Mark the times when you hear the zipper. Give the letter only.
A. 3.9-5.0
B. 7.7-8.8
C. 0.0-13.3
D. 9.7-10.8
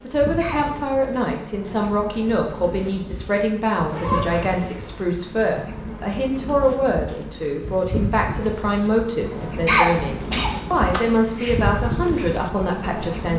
A.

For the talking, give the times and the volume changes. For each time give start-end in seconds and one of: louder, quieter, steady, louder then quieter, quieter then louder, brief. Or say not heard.
0.0-13.3 steady.